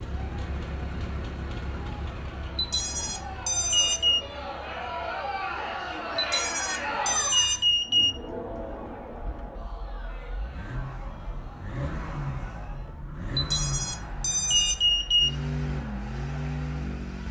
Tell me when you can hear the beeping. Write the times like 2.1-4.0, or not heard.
2.5-4.2, 6.2-8.2, 13.3-15.3.